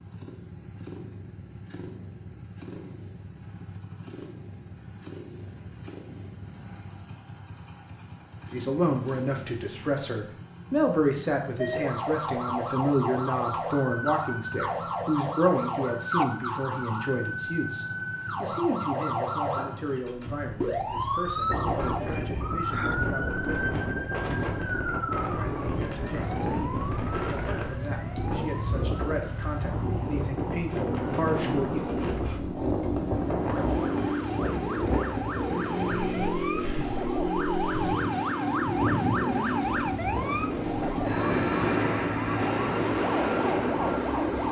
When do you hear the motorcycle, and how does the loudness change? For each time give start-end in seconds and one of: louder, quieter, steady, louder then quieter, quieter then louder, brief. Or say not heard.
0.0-44.4 louder.